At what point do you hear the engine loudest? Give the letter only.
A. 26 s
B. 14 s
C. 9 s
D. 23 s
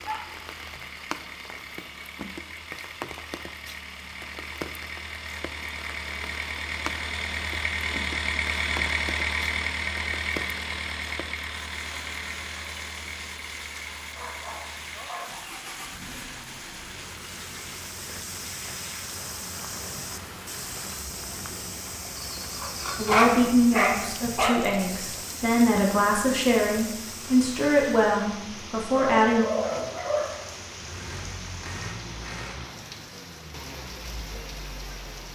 C.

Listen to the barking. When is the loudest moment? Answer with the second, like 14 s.
23 s.